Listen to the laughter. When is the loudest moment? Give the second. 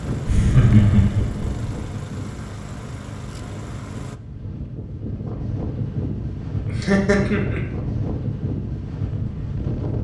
1 s.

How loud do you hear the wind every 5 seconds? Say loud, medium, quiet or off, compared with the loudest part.
medium, loud.